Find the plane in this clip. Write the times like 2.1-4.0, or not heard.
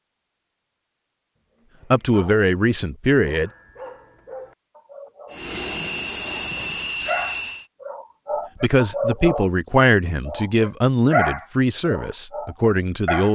5.3-7.7.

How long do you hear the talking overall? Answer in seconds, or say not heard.
6 s.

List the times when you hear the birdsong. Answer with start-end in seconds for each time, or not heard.
not heard.